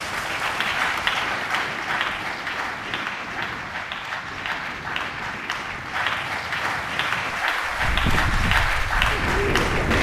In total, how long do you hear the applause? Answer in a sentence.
You can hear the applause for 10 seconds altogether.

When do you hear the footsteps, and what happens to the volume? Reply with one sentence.
The footsteps can't be heard in this clip.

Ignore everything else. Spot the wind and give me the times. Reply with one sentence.
You can hear the wind from 0.0 to 9.9 s.